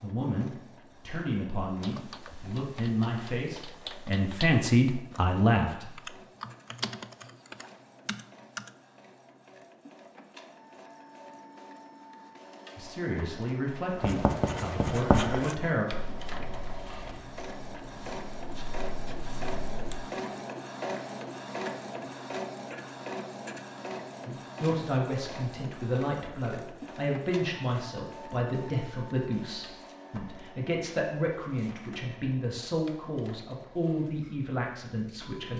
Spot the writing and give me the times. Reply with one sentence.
You can hear the writing from 13.9 to 20.1 s.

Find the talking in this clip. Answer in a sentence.
The talking can be heard from 0.0 to 6.0 s, from 12.8 to 15.8 s and from 24.2 to 35.5 s.